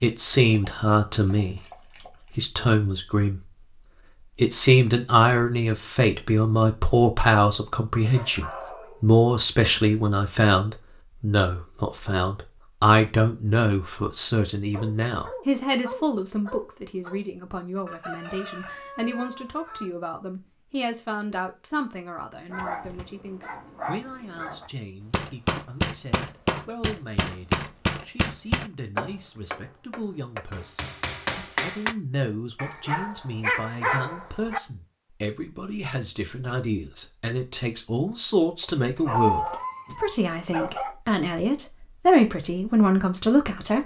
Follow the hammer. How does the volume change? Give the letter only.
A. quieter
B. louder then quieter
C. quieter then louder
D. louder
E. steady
C.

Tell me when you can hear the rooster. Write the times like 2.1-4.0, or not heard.
17.9-19.9.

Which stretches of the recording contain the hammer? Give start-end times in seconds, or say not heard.
25.1-31.9.